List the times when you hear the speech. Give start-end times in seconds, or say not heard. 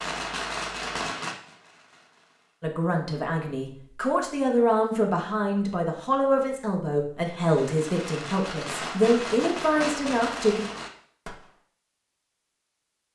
2.6-10.7.